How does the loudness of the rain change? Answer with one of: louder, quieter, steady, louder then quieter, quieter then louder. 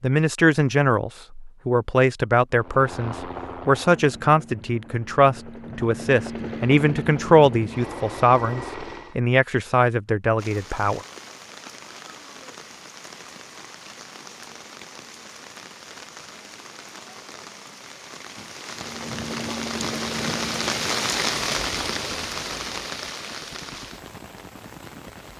louder then quieter.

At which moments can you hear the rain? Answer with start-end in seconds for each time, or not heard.
10.3-25.3.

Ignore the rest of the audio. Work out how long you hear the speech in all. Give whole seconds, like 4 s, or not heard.
11 s.